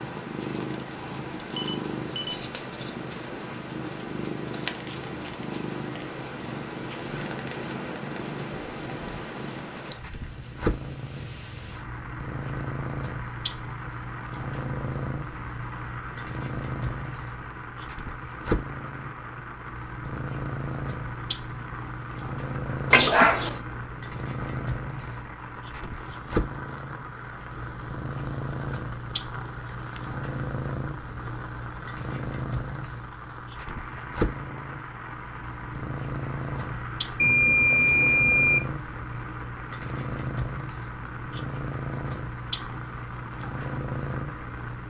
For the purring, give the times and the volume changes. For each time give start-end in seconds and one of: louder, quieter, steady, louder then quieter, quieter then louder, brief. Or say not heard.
0.0-44.8 steady.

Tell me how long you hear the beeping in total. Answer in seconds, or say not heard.
3 s.